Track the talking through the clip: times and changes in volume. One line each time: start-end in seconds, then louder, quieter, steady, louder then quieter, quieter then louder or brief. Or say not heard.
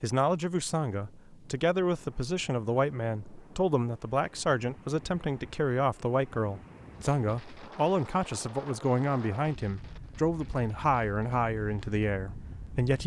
0.0-13.0 steady.